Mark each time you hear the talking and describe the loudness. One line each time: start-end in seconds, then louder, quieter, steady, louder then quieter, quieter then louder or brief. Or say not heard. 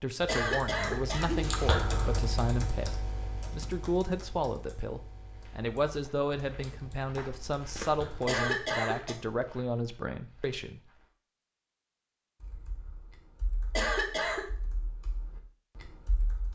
0.0-10.8 steady.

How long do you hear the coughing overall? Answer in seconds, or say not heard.
3 s.